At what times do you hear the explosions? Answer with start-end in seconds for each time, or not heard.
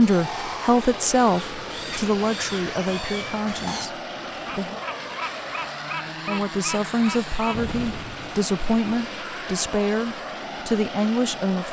7.5-8.4.